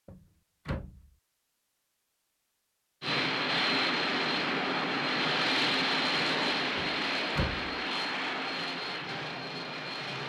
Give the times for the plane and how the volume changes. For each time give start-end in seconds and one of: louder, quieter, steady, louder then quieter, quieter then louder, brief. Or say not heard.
3.0-10.2 quieter.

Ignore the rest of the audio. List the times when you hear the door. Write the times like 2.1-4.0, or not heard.
0.1-1.1, 6.8-7.8.